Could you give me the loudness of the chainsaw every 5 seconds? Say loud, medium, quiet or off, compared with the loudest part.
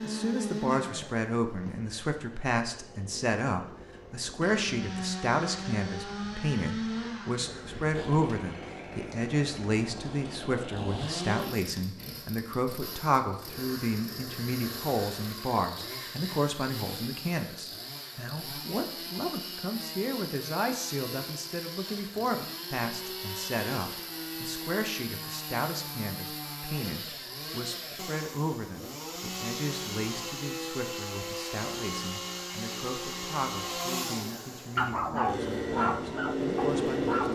medium, medium, medium, medium, medium, medium, medium, loud.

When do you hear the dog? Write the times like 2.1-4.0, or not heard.
34.8-37.3.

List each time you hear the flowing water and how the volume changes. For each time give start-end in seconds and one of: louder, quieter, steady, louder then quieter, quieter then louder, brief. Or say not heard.
not heard.